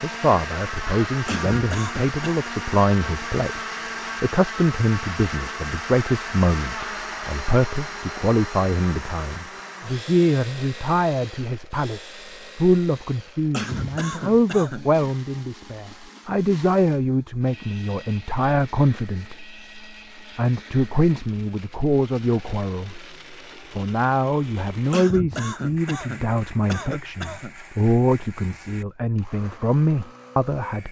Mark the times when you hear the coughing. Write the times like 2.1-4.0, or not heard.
1.2-2.1, 13.5-14.9, 24.9-27.6.